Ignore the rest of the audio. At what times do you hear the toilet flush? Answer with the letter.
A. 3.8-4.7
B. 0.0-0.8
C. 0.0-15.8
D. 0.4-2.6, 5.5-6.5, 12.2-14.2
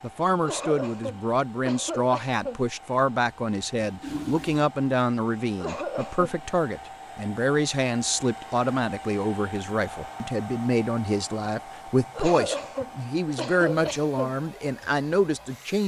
A.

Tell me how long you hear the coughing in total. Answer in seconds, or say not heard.
5 s.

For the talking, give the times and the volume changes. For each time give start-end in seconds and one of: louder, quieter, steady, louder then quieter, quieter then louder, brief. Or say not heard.
0.0-15.8 steady.